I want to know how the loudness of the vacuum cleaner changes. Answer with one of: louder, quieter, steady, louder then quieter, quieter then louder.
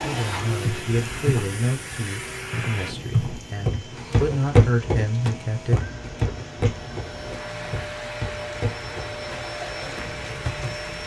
quieter then louder.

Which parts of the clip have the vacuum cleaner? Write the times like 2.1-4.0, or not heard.
0.0-11.0.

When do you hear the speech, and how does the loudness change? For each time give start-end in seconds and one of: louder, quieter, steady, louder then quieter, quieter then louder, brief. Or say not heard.
0.0-5.9 quieter then louder.